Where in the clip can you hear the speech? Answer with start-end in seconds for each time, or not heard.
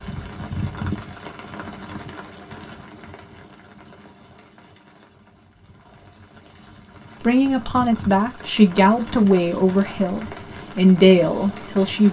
7.2-12.0.